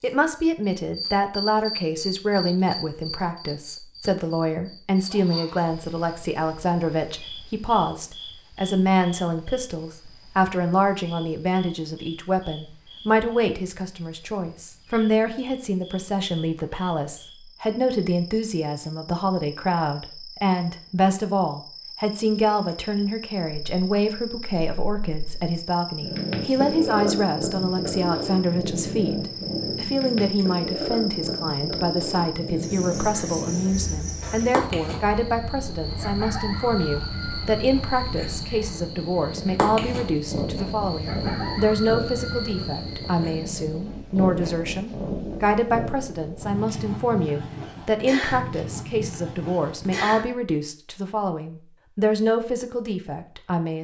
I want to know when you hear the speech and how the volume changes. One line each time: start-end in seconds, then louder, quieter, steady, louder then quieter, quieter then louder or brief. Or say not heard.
0.0-53.7 steady.